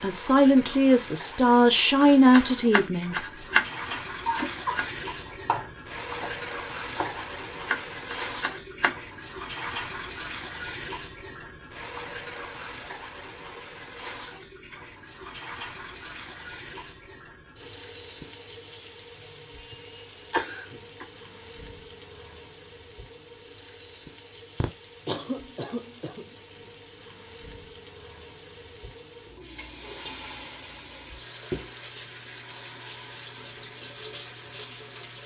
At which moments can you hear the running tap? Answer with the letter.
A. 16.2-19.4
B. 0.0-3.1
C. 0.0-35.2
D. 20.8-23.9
C.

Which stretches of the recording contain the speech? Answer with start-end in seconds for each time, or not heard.
0.0-3.1.